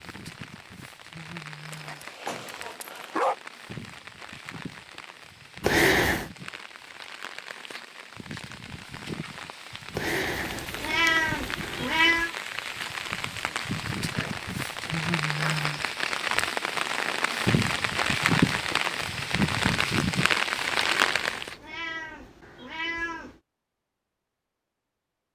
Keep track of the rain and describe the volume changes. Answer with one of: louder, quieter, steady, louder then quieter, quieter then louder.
louder.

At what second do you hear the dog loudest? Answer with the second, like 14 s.
3 s.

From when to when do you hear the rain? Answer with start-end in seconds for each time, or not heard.
0.0-21.6.